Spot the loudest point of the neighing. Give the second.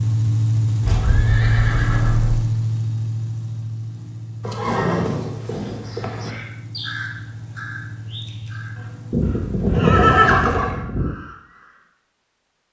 10 s.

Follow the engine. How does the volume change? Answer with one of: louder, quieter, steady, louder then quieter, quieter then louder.
quieter.